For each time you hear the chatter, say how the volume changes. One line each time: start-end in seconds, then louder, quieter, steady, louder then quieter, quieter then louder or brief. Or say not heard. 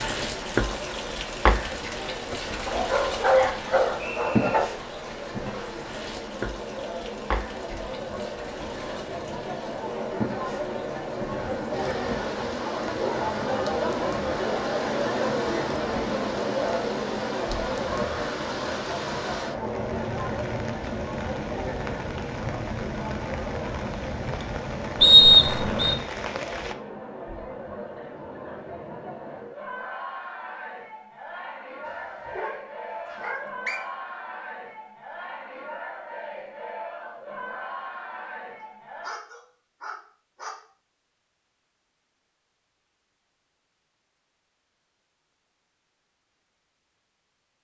0.0-39.1 louder then quieter.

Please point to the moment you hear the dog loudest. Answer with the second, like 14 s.
3 s.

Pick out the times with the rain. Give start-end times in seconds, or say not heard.
0.0-26.8.